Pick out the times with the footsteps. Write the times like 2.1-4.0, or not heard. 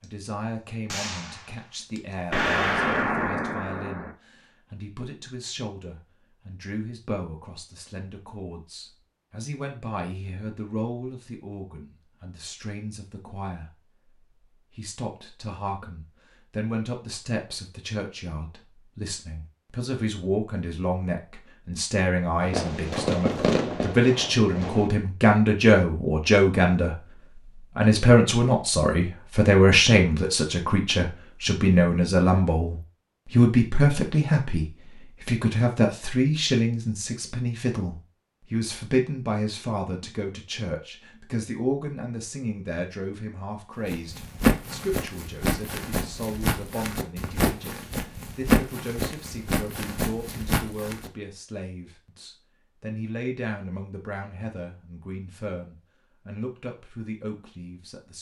43.9-51.1.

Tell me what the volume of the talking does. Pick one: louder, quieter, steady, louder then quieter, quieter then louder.
louder then quieter.